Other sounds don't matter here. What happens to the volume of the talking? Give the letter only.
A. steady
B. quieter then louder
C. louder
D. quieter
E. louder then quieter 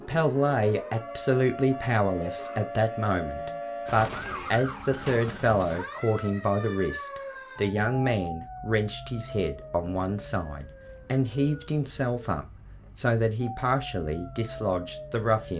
A.